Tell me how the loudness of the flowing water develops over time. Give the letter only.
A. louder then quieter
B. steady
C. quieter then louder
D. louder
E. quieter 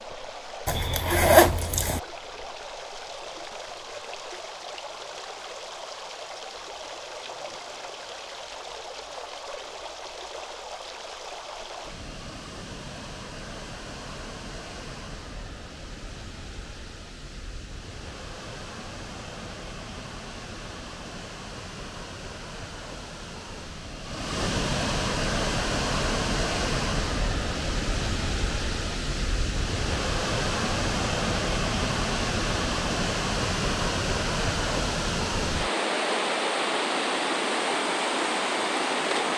D.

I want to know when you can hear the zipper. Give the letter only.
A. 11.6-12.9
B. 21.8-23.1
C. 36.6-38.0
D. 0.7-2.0
D.